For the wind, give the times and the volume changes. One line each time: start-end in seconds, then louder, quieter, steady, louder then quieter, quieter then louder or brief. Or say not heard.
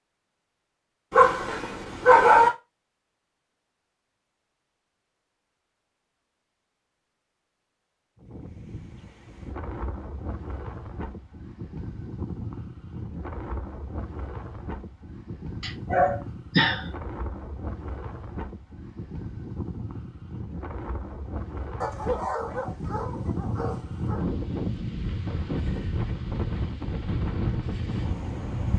8.2-28.7 louder.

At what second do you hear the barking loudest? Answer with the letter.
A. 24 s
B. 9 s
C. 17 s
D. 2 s
D.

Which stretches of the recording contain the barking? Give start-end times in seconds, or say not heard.
1.1-2.5, 15.6-16.9, 21.8-24.2.